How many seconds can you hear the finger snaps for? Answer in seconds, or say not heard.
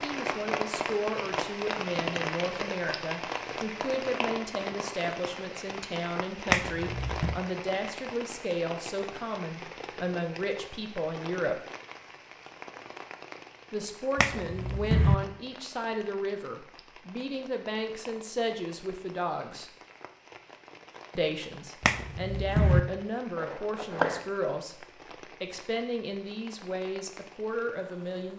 3 s.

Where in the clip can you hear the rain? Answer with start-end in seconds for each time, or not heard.
0.0-28.3.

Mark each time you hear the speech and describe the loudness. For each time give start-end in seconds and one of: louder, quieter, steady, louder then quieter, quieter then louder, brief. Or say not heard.
0.0-11.6 steady
13.7-19.7 steady
21.1-28.3 steady.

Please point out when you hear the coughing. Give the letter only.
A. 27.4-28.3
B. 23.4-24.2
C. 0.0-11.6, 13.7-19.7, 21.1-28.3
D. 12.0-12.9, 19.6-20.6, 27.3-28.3
B.